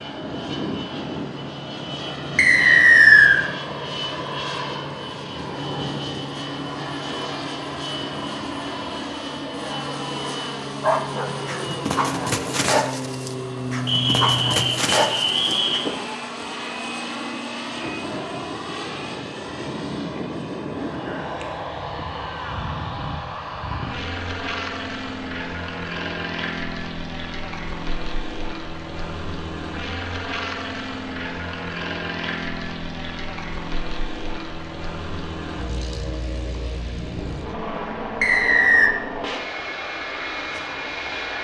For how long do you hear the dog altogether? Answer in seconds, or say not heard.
5 s.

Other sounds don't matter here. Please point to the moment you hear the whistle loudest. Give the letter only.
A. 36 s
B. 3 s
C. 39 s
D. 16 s
B.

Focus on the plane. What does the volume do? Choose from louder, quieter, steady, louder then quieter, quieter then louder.
steady.